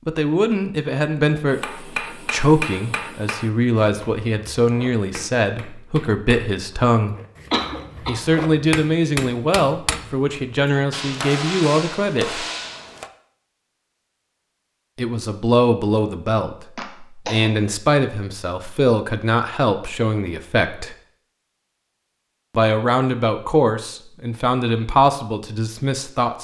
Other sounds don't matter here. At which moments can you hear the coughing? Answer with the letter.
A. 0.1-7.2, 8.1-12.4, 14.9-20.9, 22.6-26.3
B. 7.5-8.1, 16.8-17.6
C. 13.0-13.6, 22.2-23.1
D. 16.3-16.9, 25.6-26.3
B.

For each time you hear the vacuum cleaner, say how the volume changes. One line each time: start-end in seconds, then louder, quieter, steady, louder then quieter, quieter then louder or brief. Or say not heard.
not heard.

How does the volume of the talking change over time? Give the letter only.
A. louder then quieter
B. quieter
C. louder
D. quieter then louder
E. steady
E.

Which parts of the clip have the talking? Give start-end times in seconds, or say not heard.
0.1-7.2, 8.1-12.4, 14.9-20.9, 22.6-26.3.